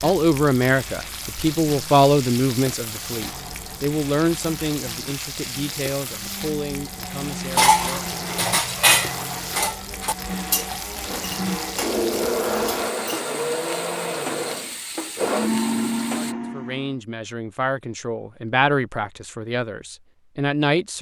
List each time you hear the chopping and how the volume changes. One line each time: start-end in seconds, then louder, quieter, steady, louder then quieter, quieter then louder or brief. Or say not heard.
not heard.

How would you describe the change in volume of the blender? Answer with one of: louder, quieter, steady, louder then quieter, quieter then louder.
louder.